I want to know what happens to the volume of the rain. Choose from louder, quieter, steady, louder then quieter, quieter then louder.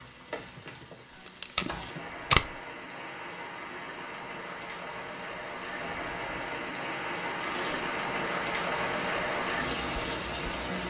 louder.